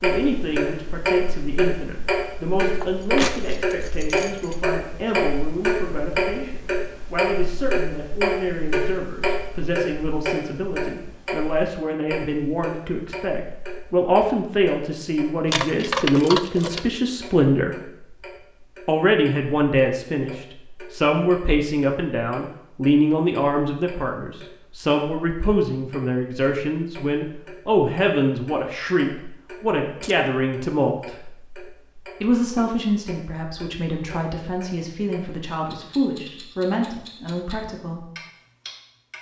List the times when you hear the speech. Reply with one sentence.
You can hear the speech from 0.0 to 17.8 s, from 18.9 to 31.1 s and from 32.2 to 38.0 s.